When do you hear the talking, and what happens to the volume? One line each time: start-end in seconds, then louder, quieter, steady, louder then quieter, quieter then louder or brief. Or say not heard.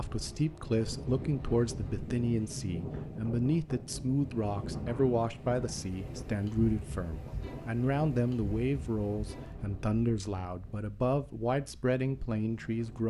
0.0-13.0 steady.